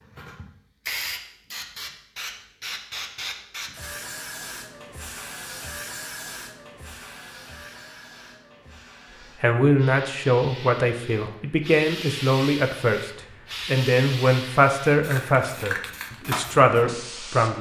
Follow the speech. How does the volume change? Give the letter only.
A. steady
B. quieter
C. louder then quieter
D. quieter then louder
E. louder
A.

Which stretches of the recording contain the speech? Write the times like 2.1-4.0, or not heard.
9.4-17.5.